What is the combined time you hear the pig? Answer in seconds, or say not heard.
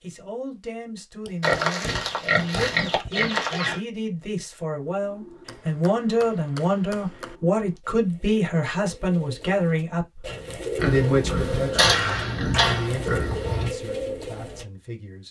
5 s.